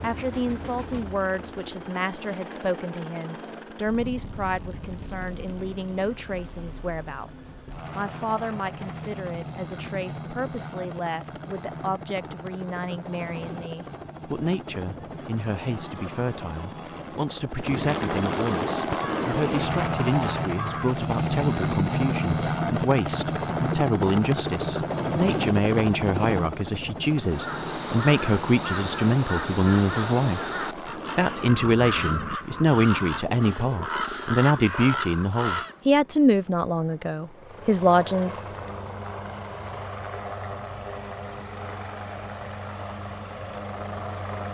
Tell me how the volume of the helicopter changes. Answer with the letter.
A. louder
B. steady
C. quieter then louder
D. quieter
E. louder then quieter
E.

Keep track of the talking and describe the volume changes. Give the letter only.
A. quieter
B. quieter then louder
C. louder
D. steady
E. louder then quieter
C.